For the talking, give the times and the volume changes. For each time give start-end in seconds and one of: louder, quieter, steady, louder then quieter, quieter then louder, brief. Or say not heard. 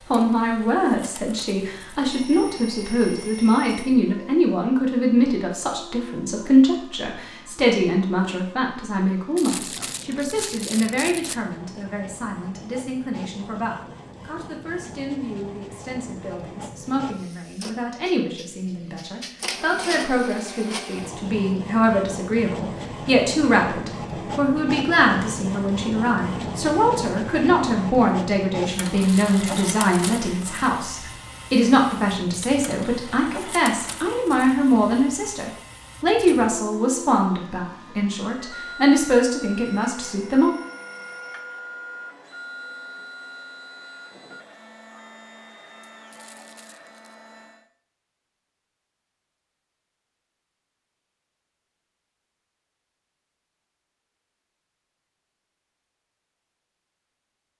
0.1-40.5 quieter then louder.